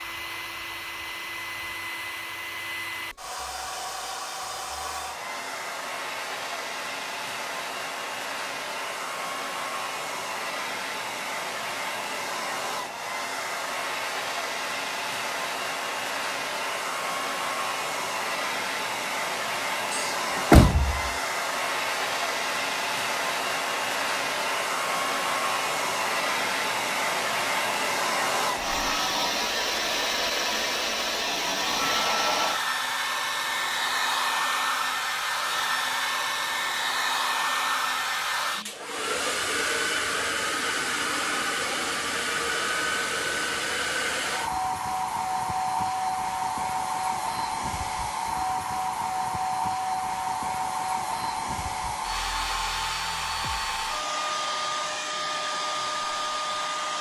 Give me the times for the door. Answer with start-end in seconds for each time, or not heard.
19.9-21.1.